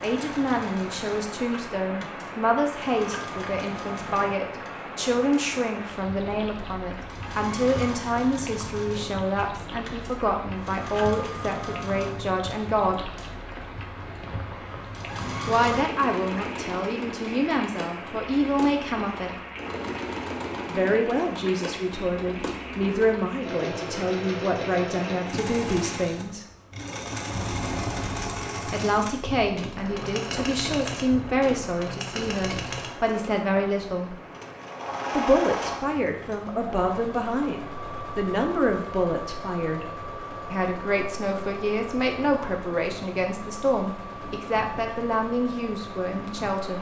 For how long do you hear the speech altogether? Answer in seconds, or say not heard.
39 s.